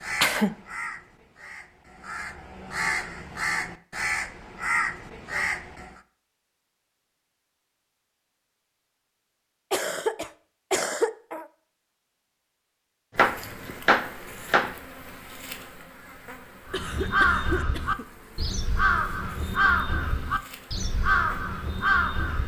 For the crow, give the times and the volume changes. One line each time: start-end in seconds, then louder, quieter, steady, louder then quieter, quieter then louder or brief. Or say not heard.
0.0-6.0 louder
16.6-22.4 quieter then louder.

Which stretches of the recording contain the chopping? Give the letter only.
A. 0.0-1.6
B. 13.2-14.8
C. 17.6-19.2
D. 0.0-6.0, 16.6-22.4
B.